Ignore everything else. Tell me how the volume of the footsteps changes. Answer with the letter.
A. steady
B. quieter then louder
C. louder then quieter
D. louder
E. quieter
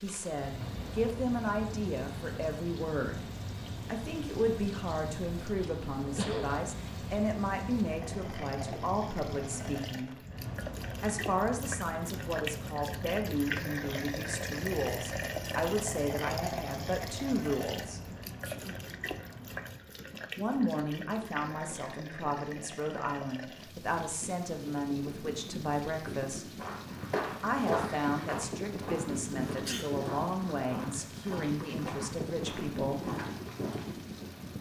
E.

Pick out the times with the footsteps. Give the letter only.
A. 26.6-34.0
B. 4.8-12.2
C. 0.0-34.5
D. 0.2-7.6
A.